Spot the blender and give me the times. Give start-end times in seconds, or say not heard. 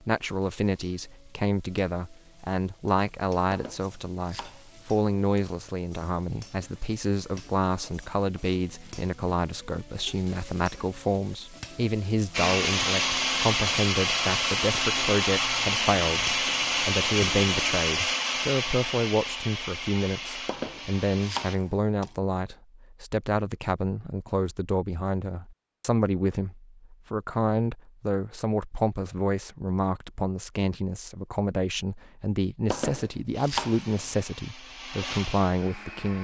12.3-21.6, 33.3-36.1.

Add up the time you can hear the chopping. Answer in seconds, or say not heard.
4 s.